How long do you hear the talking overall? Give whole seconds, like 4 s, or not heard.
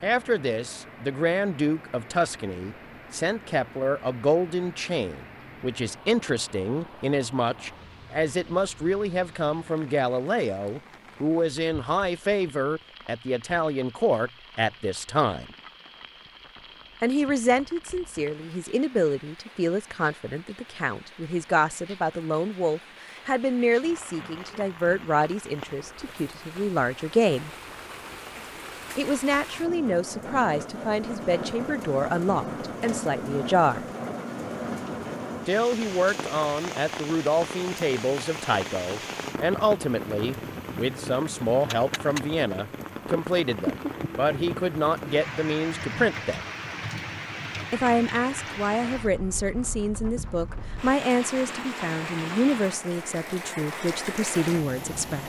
49 s.